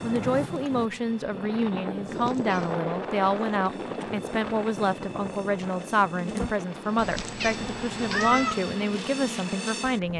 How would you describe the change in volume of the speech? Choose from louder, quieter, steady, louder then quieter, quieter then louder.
steady.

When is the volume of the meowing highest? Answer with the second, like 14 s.
8 s.